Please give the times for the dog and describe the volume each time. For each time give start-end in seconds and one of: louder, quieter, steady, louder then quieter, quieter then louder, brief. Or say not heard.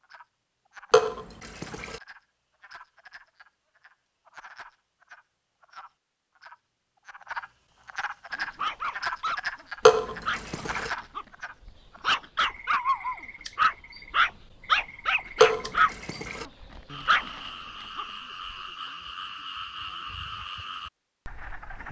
8.3-18.9 louder then quieter.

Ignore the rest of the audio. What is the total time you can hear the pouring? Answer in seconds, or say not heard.
3 s.